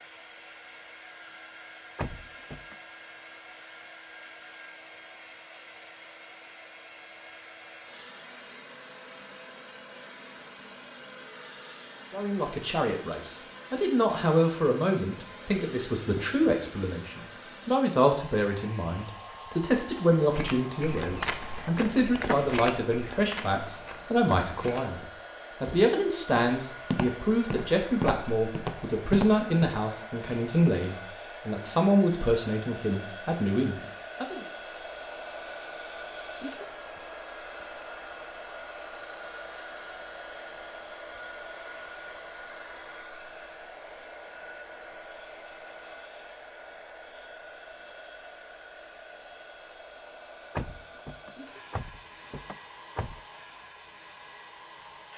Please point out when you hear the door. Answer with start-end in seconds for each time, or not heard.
1.9-2.8, 50.5-53.2.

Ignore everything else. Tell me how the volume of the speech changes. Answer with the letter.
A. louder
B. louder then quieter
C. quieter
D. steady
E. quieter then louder
D.